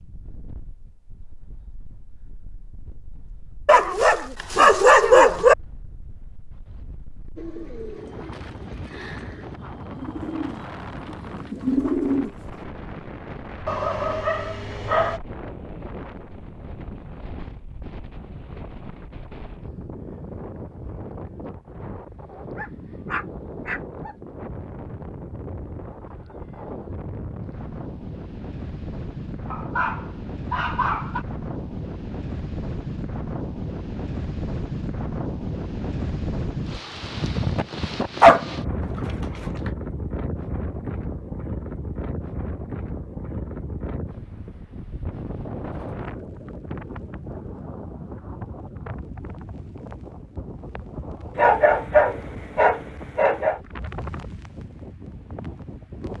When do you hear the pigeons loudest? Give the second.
12 s.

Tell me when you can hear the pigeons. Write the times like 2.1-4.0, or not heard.
7.3-12.7.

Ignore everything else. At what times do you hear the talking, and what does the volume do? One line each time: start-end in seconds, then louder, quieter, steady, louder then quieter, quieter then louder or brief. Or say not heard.
not heard.